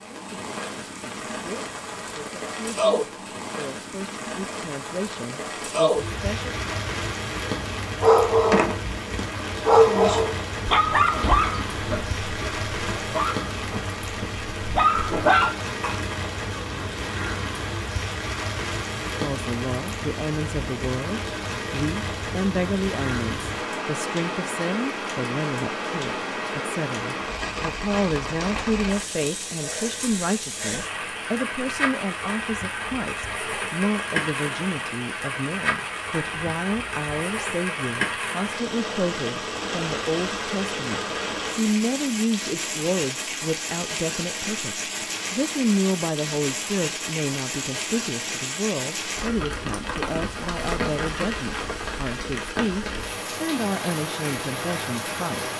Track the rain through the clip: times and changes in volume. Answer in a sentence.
You can hear the rain from 0.0 to 55.5 s, at a steady volume.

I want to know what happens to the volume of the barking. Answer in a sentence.
The loudness of the barking goes down, then up.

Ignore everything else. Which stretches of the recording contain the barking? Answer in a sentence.
The barking can be heard from 8.0 to 15.9 s.